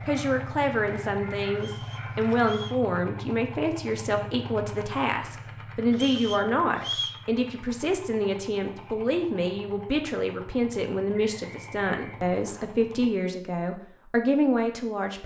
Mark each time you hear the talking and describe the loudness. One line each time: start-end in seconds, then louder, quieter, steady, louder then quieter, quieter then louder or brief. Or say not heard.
0.0-15.2 steady.